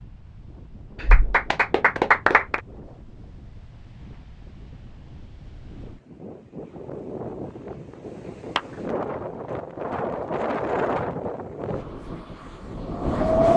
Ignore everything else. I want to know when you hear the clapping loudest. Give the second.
2 s.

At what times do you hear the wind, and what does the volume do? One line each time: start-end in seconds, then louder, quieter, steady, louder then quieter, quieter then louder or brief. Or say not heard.
0.0-13.5 louder.